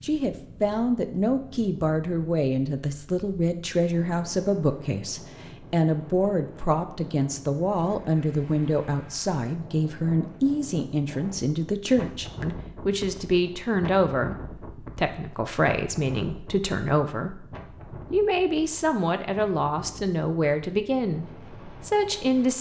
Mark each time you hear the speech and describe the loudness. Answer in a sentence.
You can hear the speech from 0.0 to 22.5 s, at a steady volume.